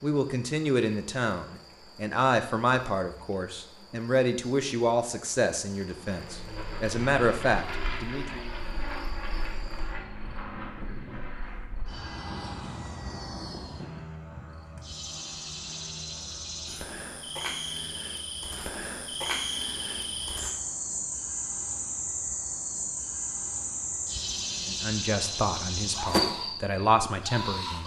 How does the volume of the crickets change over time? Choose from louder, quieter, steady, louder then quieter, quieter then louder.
louder.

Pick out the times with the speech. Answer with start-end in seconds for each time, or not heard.
0.0-8.4, 24.6-27.8.